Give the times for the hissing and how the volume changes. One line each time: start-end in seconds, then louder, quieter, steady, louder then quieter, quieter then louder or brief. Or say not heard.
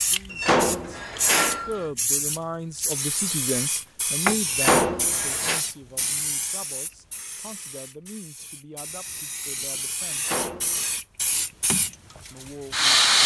0.0-13.2 quieter then louder.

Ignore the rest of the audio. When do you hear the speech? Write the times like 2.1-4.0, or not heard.
0.0-10.3, 12.3-13.2.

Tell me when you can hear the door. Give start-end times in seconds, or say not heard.
0.3-1.9, 4.5-5.6, 10.1-10.9.